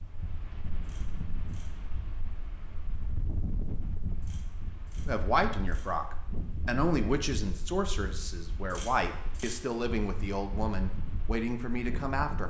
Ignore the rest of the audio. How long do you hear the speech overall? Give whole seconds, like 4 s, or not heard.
7 s.